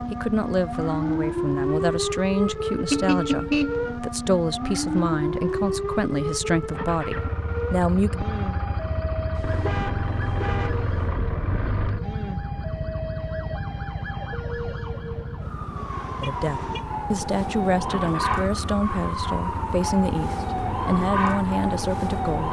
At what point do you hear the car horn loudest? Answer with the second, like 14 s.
3 s.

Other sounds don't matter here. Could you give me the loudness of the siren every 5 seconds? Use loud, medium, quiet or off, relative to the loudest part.
loud, loud, medium, loud, loud.